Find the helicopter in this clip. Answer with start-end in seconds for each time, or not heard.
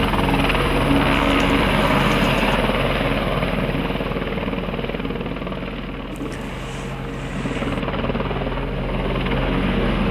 0.0-10.0.